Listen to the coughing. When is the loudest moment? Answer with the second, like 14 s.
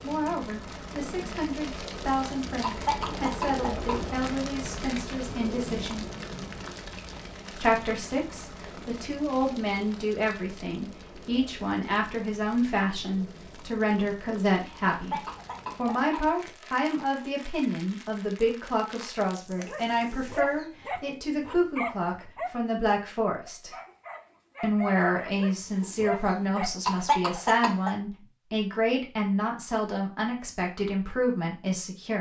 27 s.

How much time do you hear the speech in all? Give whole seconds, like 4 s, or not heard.
30 s.